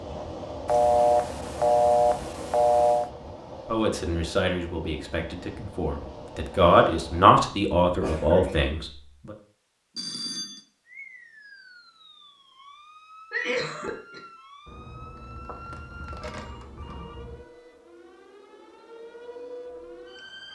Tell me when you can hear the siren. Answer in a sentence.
The siren can be heard from 10.8 to 20.5 s.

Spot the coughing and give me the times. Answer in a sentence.
The coughing can be heard from 8.0 to 8.6 s and from 13.3 to 14.2 s.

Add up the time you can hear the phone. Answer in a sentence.
The phone can be heard for 6 seconds in total.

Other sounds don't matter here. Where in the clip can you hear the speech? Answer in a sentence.
The speech can be heard from 3.6 to 9.3 s.